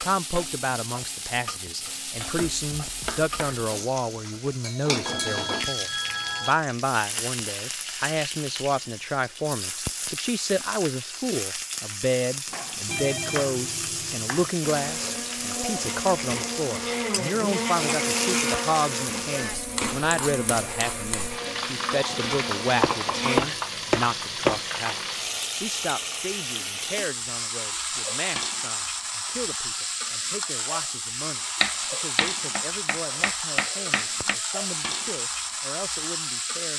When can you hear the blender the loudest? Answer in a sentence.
The volume of the blender peaks at 18 seconds.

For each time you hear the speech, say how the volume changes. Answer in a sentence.
You can hear the speech from 0.0 to 36.7 s, getting quieter.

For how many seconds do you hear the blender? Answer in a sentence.
You can hear the blender for 9 seconds altogether.